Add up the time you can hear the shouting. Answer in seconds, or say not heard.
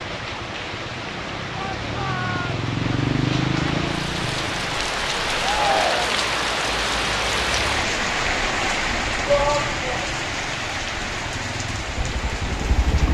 3 s.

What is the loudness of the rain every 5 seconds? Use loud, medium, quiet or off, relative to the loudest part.
medium, loud, medium.